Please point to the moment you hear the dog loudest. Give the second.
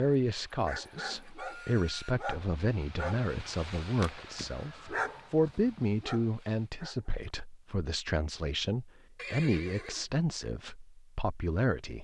5 s.